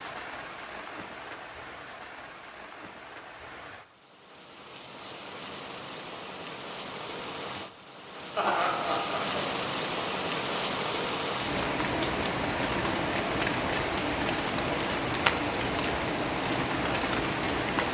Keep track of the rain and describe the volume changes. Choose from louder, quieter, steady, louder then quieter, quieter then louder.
louder.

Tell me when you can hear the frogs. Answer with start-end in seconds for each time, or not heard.
not heard.